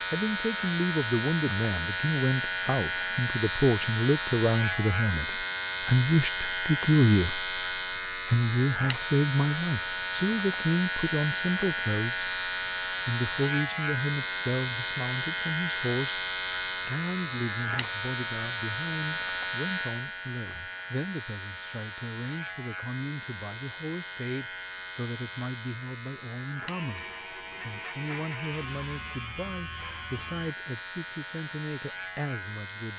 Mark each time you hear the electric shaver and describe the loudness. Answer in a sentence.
The electric shaver can be heard from 0.0 to 32.9 s, getting quieter.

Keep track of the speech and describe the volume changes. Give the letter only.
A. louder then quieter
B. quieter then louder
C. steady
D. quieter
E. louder
D.